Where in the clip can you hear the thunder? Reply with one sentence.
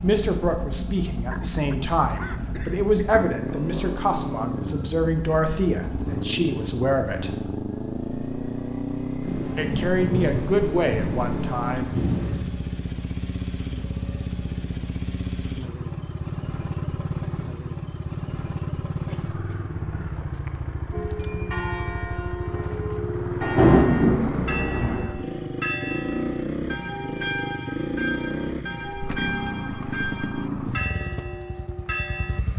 You can hear the thunder from 9.2 to 12.4 s and from 23.4 to 25.0 s.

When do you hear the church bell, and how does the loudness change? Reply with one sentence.
The church bell can be heard from 20.9 to 32.4 s, at a steady volume.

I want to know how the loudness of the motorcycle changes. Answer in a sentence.
The loudness of the motorcycle stays about the same.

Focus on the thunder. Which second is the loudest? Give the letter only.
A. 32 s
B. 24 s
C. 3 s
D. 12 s
B.